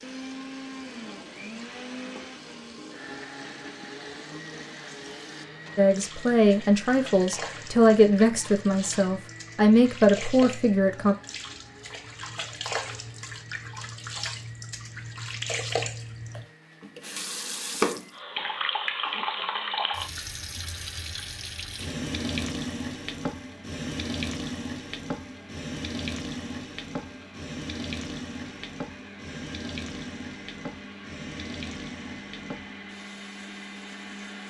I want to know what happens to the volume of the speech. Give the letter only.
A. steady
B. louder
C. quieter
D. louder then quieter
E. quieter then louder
A.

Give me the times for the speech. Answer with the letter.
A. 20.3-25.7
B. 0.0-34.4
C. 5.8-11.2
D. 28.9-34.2
C.